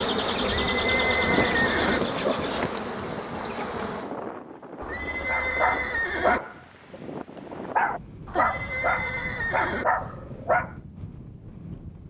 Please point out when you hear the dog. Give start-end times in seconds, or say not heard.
5.2-7.0, 7.8-10.8.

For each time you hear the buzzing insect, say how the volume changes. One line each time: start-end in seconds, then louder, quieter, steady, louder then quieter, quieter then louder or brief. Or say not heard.
0.0-4.2 quieter.